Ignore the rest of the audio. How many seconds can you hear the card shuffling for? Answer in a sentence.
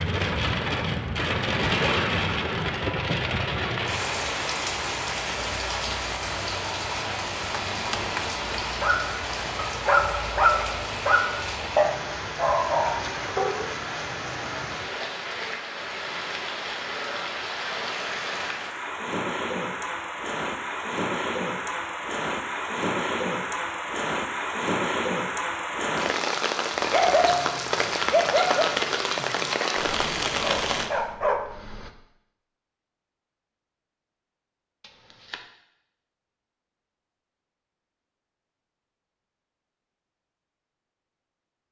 You can hear the card shuffling for 2 seconds altogether.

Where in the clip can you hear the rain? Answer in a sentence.
The rain can be heard from 0.0 to 30.9 s.